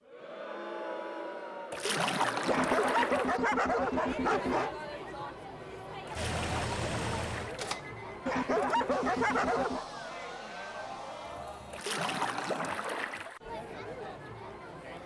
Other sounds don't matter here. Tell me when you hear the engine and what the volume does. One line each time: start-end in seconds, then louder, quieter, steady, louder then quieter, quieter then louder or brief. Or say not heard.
6.2-11.8 quieter.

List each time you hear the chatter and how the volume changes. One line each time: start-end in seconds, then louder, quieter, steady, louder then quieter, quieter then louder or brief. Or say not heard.
0.0-15.0 steady.